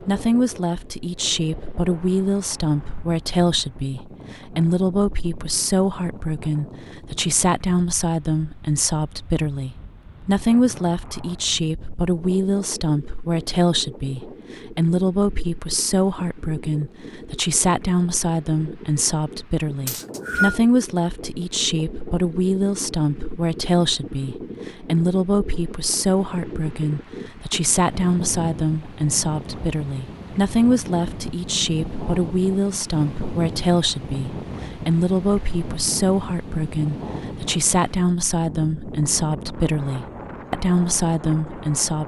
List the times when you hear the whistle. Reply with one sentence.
You can hear the whistle from 19.9 to 20.6 s.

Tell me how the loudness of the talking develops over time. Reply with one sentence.
The loudness of the talking stays about the same.